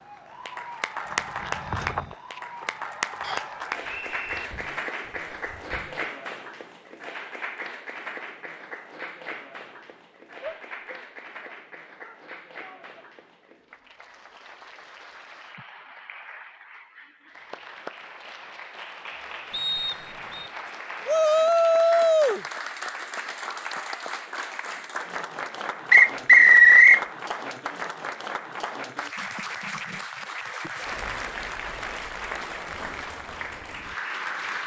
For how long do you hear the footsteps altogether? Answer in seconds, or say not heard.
5 s.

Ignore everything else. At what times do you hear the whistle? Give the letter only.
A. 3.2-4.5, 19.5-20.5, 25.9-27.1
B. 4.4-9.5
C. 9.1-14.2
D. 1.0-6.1
A.